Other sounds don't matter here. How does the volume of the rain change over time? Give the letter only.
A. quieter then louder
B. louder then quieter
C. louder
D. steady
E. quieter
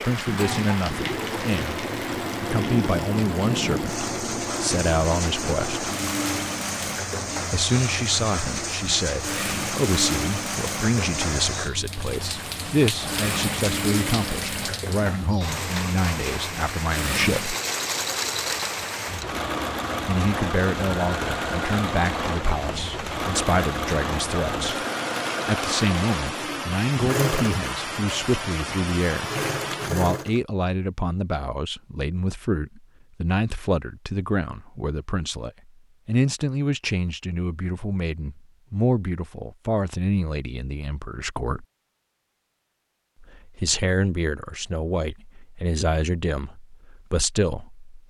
D.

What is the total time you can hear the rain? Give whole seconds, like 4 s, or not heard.
30 s.